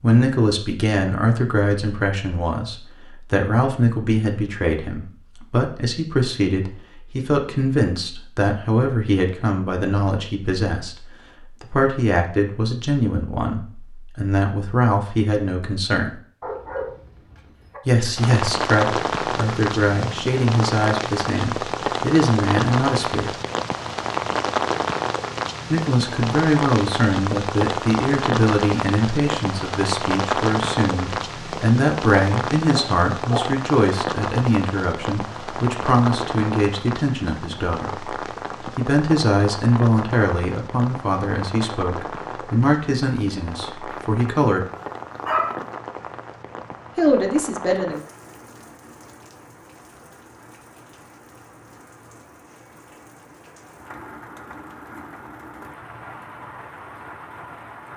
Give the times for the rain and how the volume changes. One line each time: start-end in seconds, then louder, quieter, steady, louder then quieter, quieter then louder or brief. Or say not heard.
18.1-57.9 quieter.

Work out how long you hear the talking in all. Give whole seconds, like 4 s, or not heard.
41 s.